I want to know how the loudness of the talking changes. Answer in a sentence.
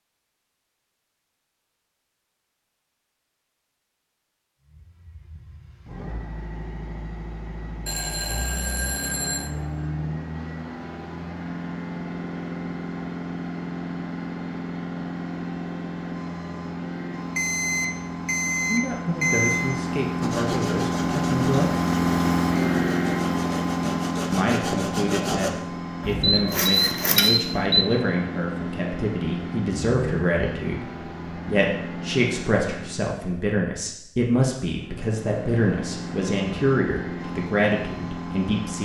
The volume of the talking stays about the same.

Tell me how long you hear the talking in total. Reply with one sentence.
You can hear the talking for 18 seconds altogether.